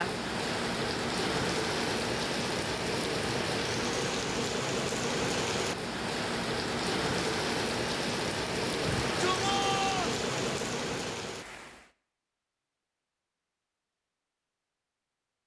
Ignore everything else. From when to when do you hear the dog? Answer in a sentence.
The dog can't be heard in this clip.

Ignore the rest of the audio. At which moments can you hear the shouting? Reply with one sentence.
The shouting can be heard from 8.8 to 10.2 s.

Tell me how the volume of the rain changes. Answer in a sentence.
The loudness of the rain stays about the same.